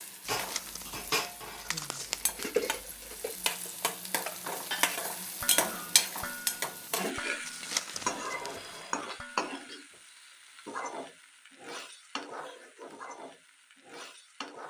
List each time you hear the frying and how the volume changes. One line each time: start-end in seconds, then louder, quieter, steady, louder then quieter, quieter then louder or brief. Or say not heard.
0.0-14.6 louder then quieter.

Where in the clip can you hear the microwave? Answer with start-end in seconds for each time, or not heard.
not heard.